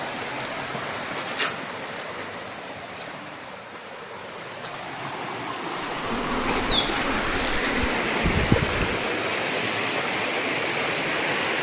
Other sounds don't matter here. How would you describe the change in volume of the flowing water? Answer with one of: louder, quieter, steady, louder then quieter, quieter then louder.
quieter then louder.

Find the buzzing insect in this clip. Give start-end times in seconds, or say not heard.
5.9-9.0.